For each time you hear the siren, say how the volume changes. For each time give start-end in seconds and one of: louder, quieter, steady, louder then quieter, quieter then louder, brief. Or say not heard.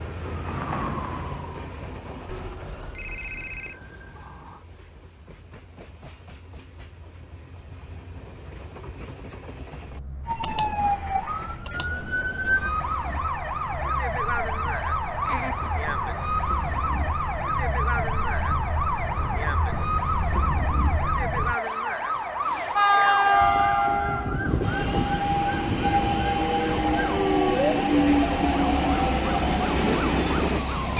0.0-4.7 quieter
10.2-30.9 steady.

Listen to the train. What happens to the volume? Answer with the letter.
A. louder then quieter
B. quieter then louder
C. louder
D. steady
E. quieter
C.